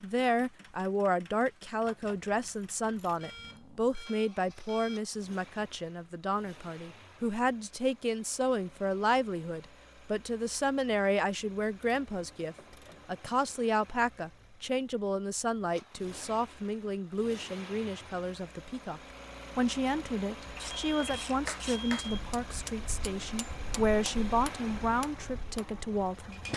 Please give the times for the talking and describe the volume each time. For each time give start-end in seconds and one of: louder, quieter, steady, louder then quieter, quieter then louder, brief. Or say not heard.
0.0-26.4 steady.